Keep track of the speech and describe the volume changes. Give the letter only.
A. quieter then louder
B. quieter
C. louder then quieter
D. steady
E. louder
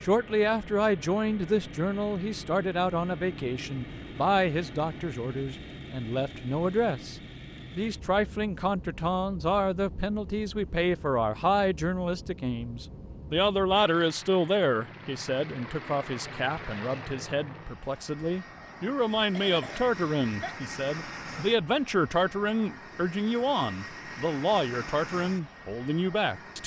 D.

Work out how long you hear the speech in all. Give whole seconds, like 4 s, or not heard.
26 s.